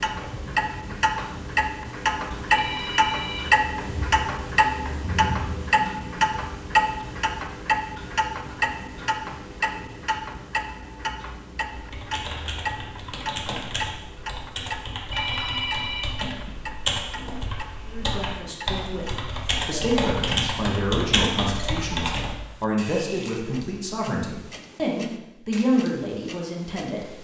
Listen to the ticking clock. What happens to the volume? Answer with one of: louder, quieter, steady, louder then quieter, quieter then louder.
quieter.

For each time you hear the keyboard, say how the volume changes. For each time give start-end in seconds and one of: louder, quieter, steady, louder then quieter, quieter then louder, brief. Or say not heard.
11.7-22.4 louder.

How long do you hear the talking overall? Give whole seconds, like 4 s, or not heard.
9 s.